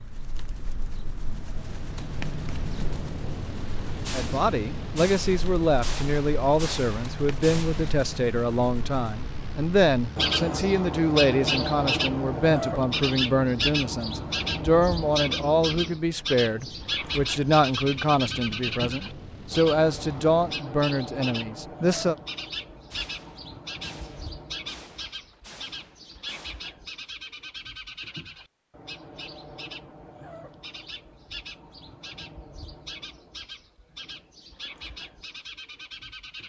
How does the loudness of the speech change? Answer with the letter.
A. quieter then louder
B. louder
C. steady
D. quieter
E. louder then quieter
C.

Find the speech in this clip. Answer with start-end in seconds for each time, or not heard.
4.1-22.1.